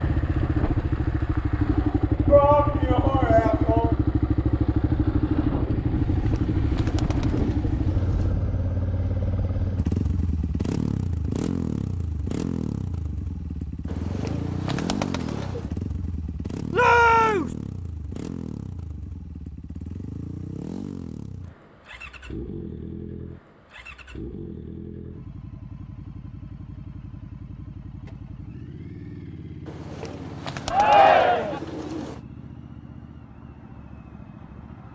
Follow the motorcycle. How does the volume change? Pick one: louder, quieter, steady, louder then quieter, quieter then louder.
quieter.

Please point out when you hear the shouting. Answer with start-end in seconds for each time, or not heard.
2.2-4.0, 16.7-17.6, 30.7-31.6.